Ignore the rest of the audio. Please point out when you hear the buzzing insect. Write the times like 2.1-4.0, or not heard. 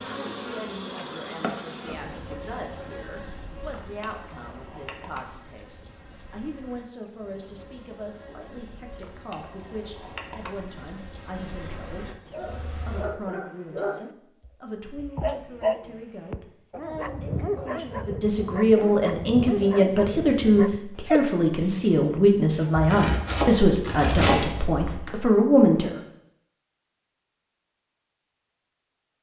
0.0-13.1.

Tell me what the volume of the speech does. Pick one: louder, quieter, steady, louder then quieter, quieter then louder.
louder.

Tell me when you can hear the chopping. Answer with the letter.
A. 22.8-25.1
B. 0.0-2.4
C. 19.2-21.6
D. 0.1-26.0
A.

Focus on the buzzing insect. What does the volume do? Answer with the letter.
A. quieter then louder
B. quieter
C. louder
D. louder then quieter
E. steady
A.